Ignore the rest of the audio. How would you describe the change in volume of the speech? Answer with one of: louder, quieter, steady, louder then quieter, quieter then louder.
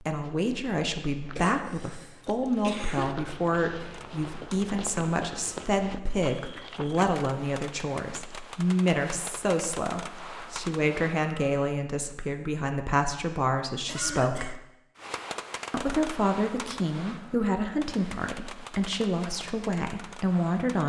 steady.